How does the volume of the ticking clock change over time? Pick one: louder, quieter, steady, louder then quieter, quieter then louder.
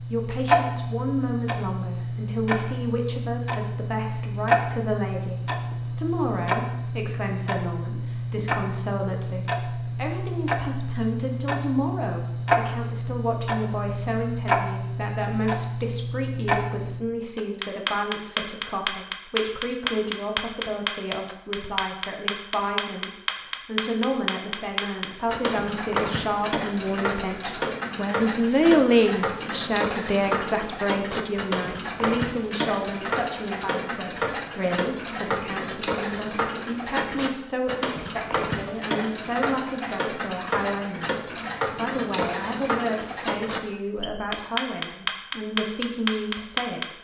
steady.